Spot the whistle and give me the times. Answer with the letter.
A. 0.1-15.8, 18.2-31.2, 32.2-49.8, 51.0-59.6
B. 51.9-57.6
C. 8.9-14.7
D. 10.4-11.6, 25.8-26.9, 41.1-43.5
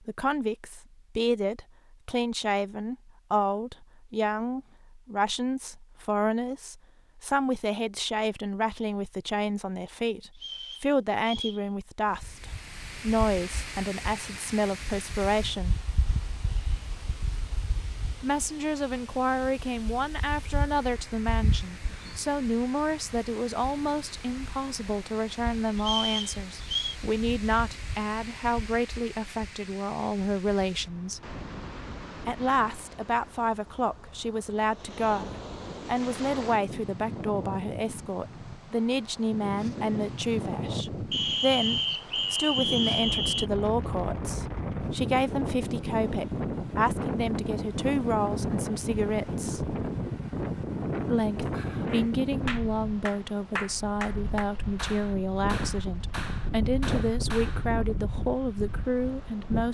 D.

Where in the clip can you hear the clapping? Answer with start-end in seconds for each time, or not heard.
51.9-57.6.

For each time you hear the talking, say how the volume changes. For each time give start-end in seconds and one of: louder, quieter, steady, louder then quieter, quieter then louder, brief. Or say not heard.
0.1-15.8 steady
18.2-31.2 steady
32.2-49.8 steady
51.0-59.6 steady.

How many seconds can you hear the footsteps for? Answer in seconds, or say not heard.
not heard.